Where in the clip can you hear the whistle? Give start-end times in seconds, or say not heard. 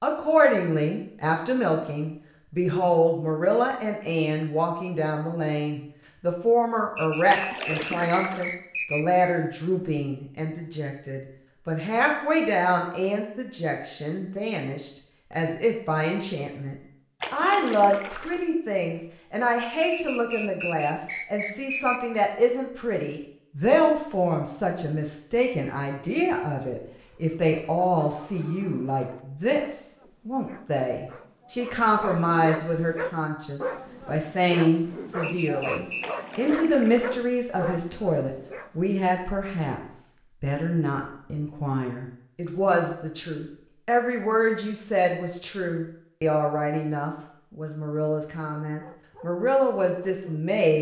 7.0-9.3, 19.9-22.0, 35.2-36.2.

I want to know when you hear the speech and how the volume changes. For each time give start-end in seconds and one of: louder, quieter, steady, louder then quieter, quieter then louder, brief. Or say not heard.
0.0-50.7 steady.